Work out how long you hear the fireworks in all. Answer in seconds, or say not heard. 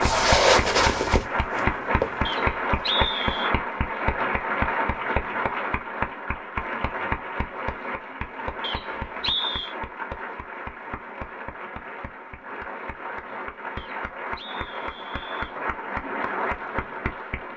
not heard.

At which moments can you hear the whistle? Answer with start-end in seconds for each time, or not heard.
2.2-3.5, 8.6-9.8, 13.8-15.6.